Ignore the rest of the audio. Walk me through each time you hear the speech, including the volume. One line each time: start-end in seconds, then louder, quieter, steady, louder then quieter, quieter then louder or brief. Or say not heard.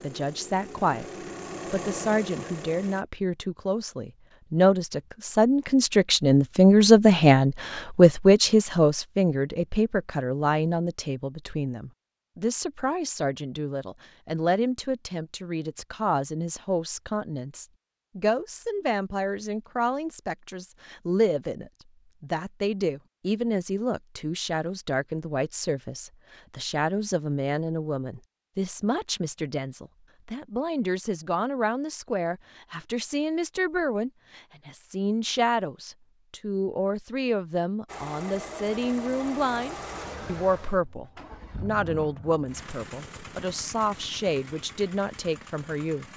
0.0-1.1 brief
1.7-46.0 quieter.